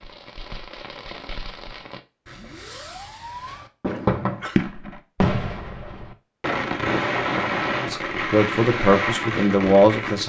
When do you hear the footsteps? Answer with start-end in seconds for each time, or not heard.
not heard.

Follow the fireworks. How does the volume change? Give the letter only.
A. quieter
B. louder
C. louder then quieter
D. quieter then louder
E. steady
B.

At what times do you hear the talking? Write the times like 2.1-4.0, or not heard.
7.8-10.2.